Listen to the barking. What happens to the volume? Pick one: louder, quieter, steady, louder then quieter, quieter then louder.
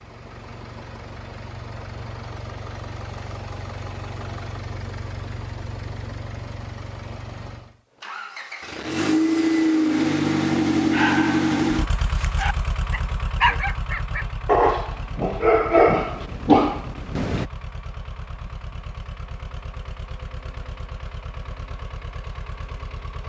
louder.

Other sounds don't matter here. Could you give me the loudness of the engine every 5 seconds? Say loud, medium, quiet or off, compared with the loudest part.
quiet, loud, loud, quiet, quiet.